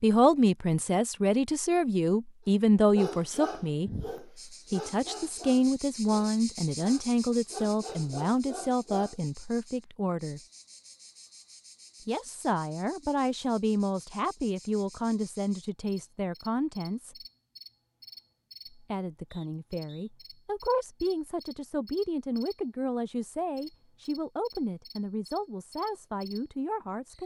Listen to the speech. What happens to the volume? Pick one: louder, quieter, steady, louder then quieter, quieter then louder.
quieter.